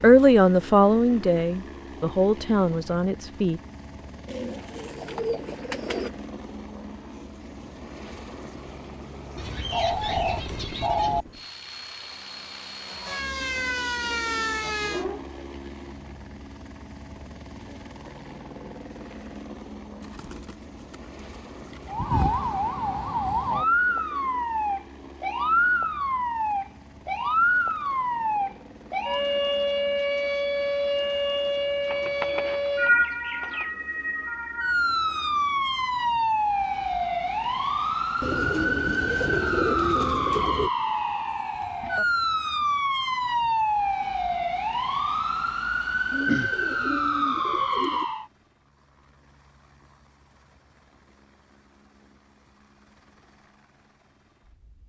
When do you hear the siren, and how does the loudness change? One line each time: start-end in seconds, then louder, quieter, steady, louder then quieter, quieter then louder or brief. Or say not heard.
12.8-15.2 brief
21.9-48.2 steady.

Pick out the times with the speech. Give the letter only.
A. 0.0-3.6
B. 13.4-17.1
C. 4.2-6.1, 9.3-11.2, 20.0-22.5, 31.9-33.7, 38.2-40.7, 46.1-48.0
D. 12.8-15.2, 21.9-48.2
A.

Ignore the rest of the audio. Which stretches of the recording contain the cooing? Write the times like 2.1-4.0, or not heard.
4.2-6.1, 9.3-11.2, 20.0-22.5, 31.9-33.7, 38.2-40.7, 46.1-48.0.